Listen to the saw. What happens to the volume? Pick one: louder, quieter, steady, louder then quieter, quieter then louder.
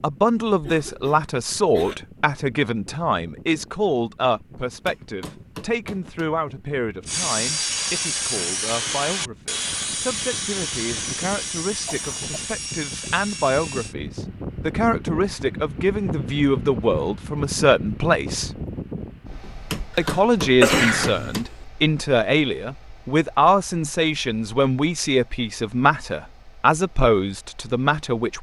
quieter.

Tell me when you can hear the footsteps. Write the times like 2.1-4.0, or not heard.
not heard.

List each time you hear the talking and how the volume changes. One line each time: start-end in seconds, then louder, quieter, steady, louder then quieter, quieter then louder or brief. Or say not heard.
0.0-18.5 quieter then louder
19.9-28.3 steady.